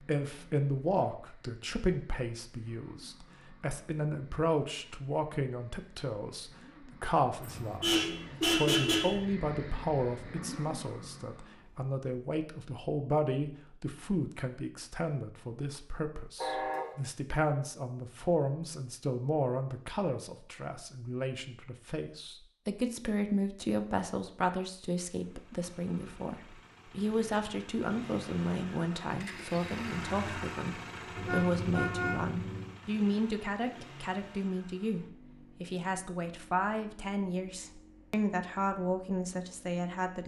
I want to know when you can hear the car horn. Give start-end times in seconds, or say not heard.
7.4-9.2, 16.4-16.9, 31.1-32.8.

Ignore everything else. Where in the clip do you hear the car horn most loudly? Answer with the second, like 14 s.
9 s.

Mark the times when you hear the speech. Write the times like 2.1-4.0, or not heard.
0.0-40.2.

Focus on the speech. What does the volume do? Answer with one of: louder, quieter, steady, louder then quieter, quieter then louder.
steady.